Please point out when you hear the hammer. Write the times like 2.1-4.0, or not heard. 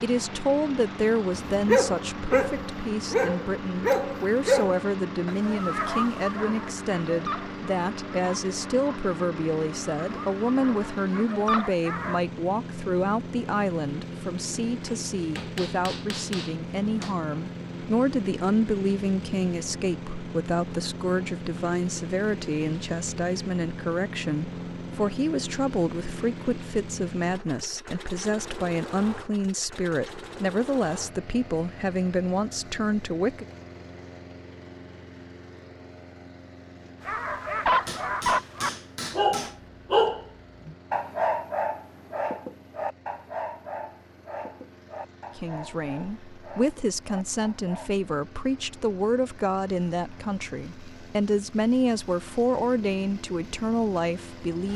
14.8-17.2, 37.9-39.6.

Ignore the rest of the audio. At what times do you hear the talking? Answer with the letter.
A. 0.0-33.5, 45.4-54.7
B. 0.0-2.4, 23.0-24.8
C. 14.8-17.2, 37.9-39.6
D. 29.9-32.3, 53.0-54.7
A.